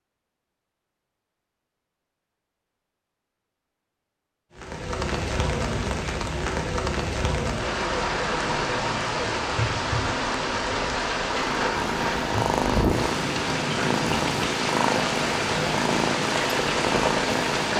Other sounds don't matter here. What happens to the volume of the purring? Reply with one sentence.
The volume of the purring stays about the same.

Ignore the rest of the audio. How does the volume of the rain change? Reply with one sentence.
The volume of the rain stays about the same.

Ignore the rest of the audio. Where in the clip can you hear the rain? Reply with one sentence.
You can hear the rain from 4.5 to 17.7 s.